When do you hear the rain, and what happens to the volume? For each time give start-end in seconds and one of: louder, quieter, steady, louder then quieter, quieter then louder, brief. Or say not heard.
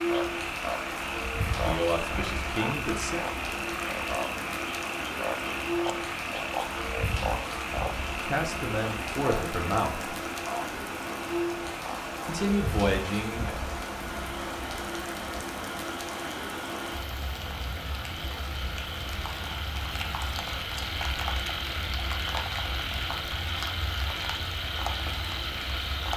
0.0-26.1 steady.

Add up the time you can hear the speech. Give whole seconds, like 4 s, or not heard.
5 s.